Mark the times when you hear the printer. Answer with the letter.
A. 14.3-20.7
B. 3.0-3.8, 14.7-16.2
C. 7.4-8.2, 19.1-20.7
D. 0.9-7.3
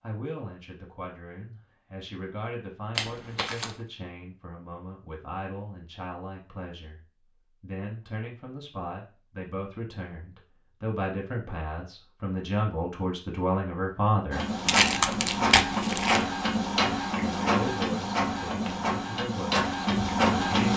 A.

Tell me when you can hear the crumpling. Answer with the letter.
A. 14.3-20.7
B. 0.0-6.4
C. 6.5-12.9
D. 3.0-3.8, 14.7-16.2
D.